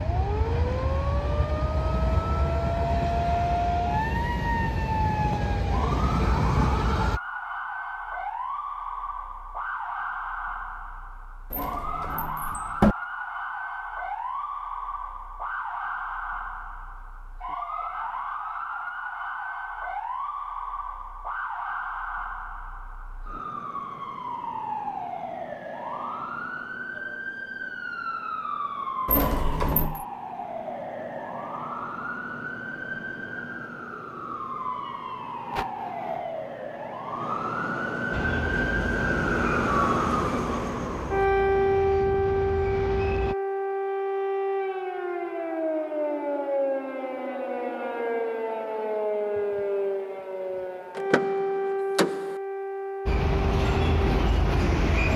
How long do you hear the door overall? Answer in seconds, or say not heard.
4 s.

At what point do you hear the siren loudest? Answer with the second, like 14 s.
42 s.